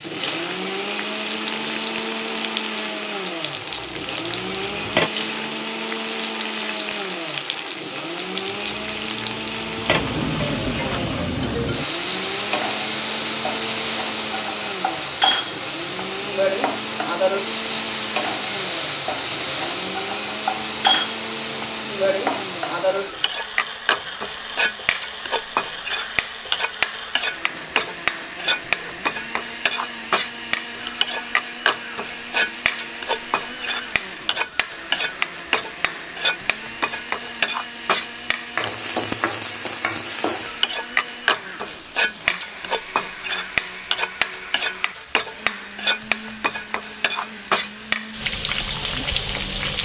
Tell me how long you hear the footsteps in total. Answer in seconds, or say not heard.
not heard.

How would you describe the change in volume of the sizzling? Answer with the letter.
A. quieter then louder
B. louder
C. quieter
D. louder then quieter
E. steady
E.